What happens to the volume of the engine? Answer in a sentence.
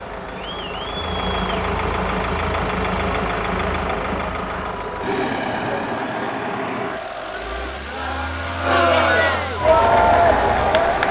The loudness of the engine goes down.